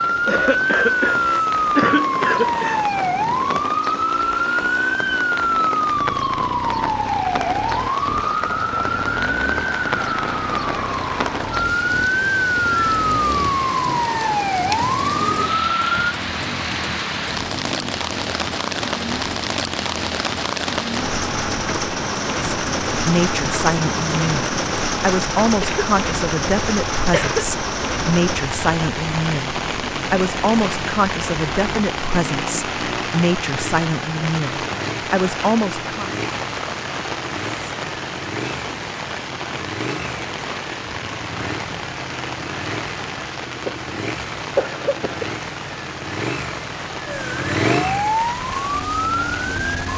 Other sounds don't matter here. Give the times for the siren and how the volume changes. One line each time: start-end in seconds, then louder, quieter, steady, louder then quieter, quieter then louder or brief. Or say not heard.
0.0-16.0 steady
47.0-49.9 brief.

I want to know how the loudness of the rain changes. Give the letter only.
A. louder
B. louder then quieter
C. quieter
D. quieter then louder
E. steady
B.